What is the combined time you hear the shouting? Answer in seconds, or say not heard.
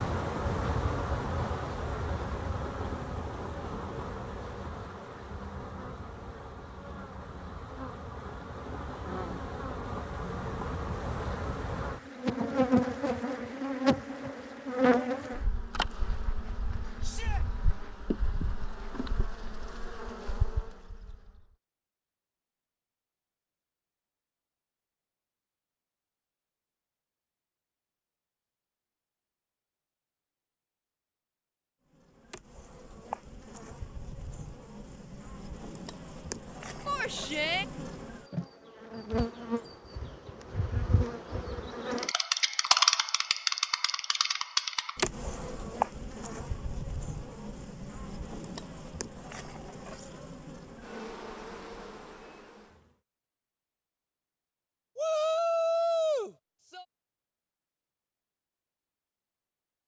3 s.